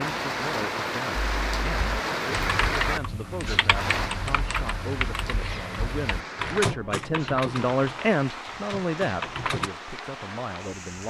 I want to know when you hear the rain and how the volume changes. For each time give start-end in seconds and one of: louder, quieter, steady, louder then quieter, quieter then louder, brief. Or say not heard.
0.0-11.0 quieter.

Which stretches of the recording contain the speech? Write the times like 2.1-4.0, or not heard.
0.0-11.0.